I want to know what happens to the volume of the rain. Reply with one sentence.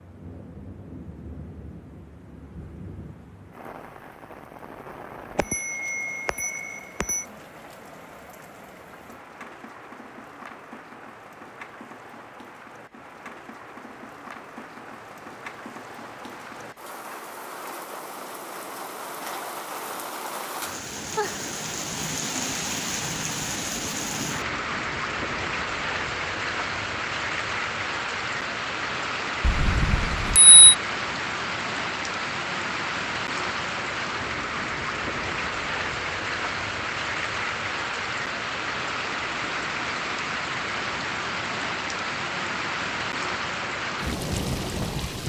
The volume of the rain goes up.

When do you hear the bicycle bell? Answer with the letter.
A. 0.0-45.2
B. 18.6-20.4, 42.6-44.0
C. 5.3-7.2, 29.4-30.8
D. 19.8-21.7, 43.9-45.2
C.